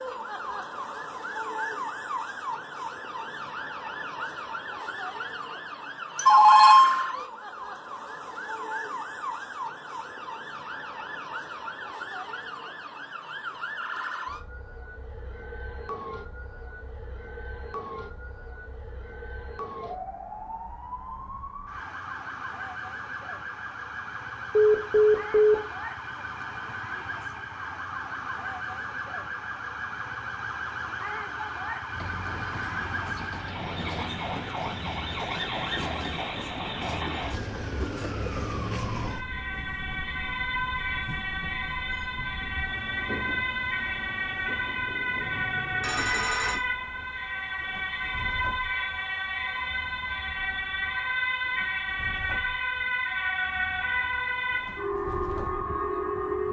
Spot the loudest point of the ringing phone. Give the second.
7 s.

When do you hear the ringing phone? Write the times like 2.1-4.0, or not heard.
6.2-7.0, 24.5-25.6, 45.8-46.6.